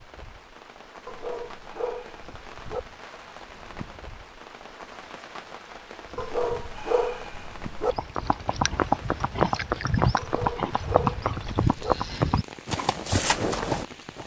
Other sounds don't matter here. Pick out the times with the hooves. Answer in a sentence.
The hooves can be heard from 7.8 to 14.2 s.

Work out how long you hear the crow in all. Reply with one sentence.
You can't hear the crow here.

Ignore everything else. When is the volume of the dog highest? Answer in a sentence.
The loudest moment of the dog is at 7 seconds.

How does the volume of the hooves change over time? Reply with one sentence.
The volume of the hooves stays about the same.